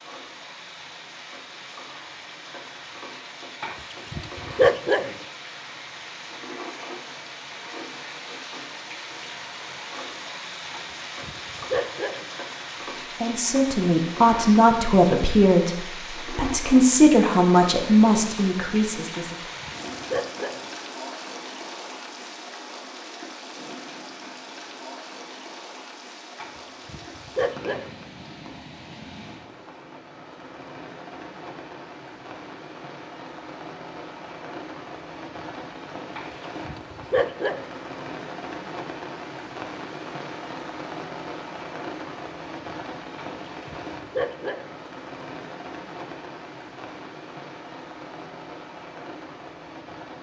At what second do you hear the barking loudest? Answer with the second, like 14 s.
5 s.